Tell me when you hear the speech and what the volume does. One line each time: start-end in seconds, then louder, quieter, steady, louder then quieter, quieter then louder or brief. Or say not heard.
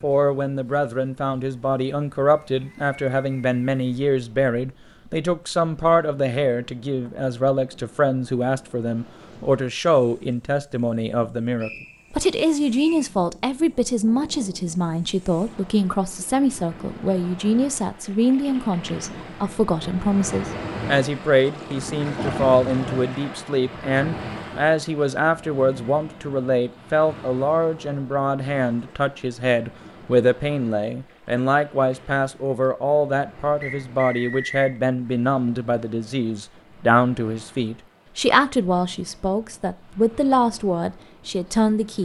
0.0-42.0 steady.